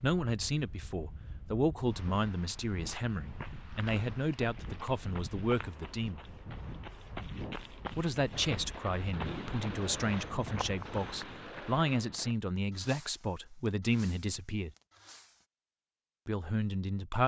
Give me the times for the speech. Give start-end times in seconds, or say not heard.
0.0-6.2, 8.0-14.7, 16.2-17.2.